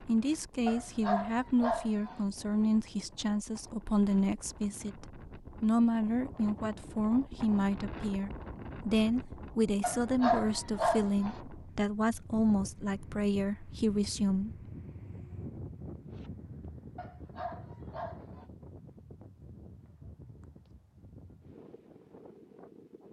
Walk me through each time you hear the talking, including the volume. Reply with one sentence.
You can hear the talking from 0.0 to 14.5 s, at a steady volume.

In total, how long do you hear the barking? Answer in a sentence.
The barking can be heard for 5 seconds in total.